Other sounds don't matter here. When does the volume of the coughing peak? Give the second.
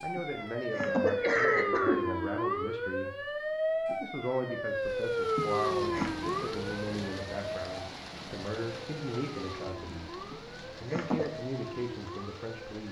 1 s.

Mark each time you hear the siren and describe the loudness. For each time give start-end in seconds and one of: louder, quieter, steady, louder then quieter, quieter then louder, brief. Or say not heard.
0.0-12.8 quieter.